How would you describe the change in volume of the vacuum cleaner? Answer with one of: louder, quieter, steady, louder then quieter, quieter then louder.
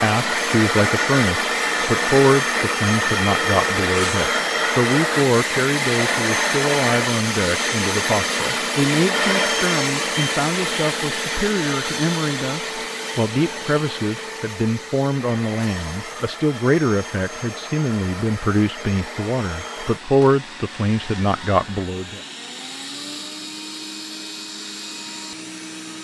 quieter.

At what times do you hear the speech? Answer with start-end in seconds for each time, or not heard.
0.0-22.2.